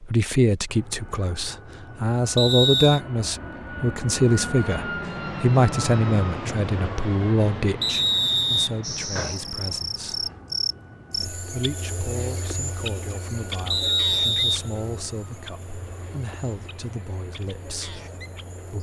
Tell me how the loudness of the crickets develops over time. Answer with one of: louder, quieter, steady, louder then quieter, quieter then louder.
quieter.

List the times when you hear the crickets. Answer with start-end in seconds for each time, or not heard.
8.8-18.7.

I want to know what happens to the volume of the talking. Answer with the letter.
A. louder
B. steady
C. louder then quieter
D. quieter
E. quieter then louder
D.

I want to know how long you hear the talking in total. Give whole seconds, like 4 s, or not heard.
17 s.